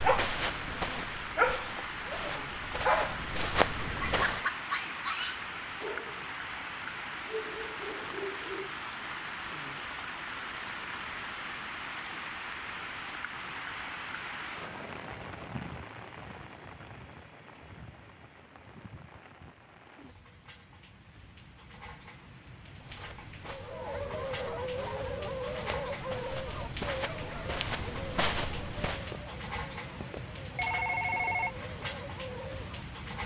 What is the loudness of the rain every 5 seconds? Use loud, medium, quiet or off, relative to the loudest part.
loud, loud, loud, medium, medium, loud, loud.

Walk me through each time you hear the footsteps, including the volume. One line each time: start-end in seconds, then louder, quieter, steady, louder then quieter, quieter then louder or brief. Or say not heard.
0.0-4.5 quieter then louder
22.8-29.1 louder.